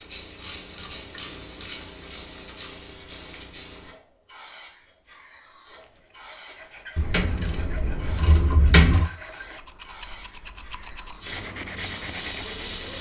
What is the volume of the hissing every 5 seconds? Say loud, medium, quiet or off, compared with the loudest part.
loud, medium, loud.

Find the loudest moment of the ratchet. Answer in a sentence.
The loudest moment of the ratchet is at 9 seconds.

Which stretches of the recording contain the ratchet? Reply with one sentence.
You can hear the ratchet from 0.4 to 2.8 s and from 7.0 to 9.1 s.